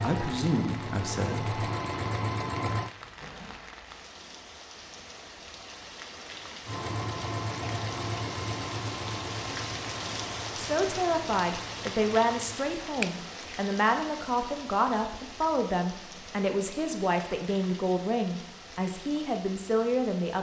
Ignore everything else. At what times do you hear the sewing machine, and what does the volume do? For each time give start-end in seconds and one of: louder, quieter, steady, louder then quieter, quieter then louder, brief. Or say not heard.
0.0-2.9 brief
6.7-12.7 quieter.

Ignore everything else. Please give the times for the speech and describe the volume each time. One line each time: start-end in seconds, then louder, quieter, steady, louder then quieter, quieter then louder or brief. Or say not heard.
0.0-1.6 brief
10.6-20.3 steady.